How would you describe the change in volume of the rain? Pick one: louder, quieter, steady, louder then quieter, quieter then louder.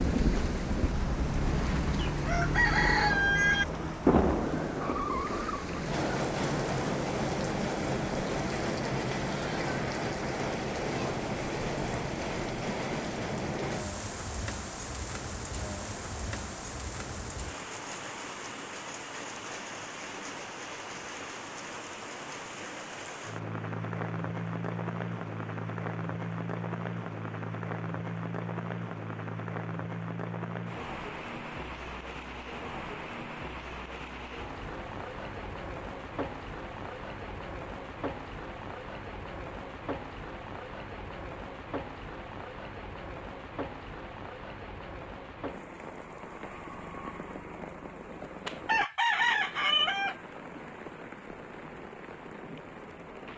quieter.